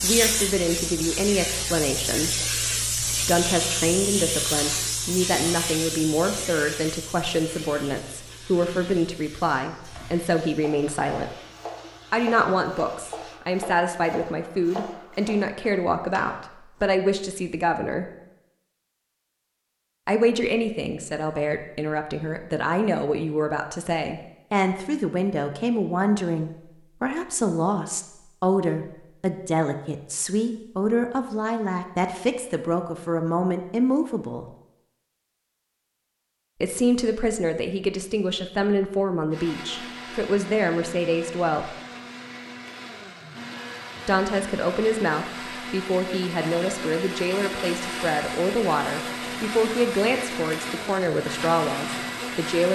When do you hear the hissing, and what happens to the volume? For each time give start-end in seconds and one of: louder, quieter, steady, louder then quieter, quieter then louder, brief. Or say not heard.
0.0-13.4 quieter.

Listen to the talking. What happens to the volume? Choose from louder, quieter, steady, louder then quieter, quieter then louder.
steady.